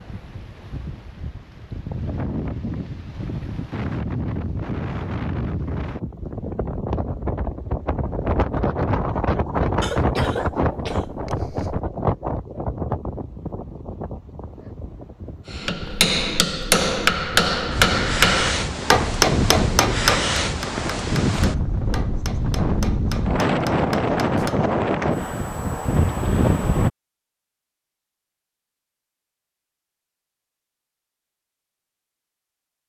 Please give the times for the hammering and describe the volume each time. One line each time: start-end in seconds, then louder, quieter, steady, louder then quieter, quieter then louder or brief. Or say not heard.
15.5-25.1 quieter.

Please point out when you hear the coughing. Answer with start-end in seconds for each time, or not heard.
9.8-11.8.